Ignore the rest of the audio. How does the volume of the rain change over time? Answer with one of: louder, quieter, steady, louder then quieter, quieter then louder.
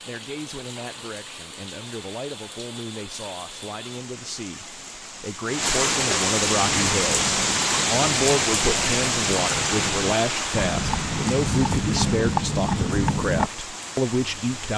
louder then quieter.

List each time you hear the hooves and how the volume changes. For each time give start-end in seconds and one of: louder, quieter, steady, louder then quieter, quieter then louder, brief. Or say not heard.
6.5-13.5 louder.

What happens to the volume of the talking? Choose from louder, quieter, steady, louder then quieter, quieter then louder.
louder.